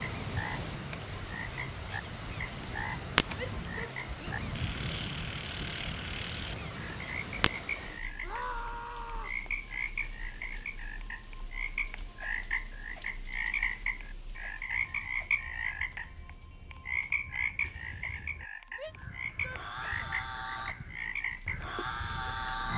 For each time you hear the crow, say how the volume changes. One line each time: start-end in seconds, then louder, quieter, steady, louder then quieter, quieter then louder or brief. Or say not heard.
0.0-7.7 louder then quieter
14.7-22.7 louder.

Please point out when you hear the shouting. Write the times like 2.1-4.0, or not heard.
3.4-4.4, 8.2-9.4, 18.8-20.1.